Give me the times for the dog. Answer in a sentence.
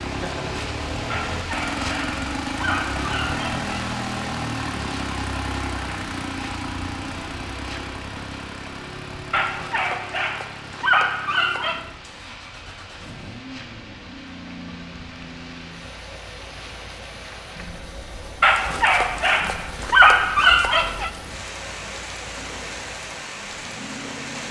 The dog can be heard from 1.1 to 3.6 s, from 9.3 to 11.8 s and from 18.4 to 21.1 s.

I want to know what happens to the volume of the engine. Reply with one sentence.
The volume of the engine goes down.